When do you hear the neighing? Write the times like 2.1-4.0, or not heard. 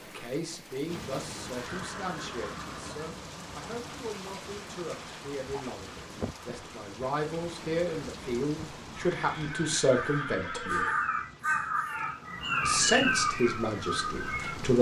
1.6-3.0, 8.9-10.9.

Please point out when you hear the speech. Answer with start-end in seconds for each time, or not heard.
0.0-10.8, 12.6-14.7.